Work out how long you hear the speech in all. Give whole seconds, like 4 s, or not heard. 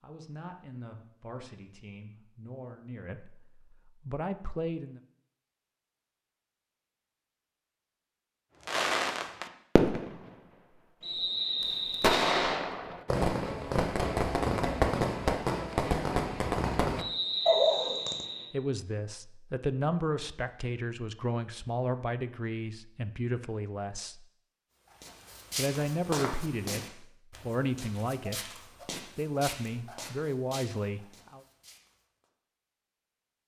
16 s.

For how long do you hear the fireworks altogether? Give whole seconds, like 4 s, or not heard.
8 s.